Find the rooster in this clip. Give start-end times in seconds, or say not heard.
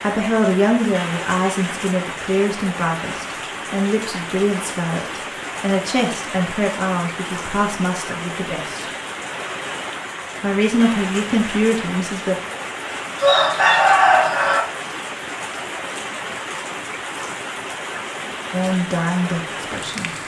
13.2-14.6.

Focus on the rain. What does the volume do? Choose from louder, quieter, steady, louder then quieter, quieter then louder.
steady.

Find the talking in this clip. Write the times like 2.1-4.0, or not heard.
0.0-8.8, 10.4-12.3, 18.5-20.1.